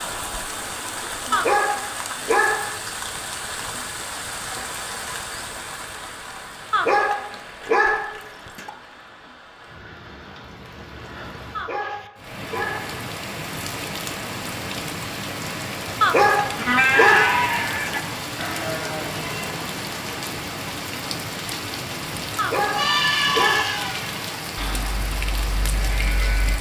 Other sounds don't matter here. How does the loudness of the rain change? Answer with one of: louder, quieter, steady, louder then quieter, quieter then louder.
quieter then louder.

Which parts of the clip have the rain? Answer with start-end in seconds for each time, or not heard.
0.0-26.5.